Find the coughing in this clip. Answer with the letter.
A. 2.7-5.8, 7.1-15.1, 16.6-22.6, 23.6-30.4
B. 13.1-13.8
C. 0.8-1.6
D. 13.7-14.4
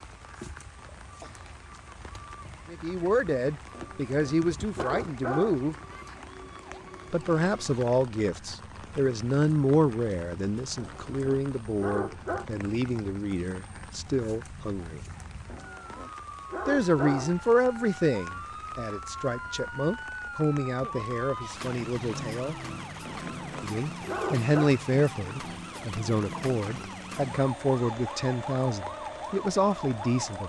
C.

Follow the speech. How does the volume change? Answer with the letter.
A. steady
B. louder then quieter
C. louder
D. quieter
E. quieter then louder
A.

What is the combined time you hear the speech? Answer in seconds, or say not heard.
24 s.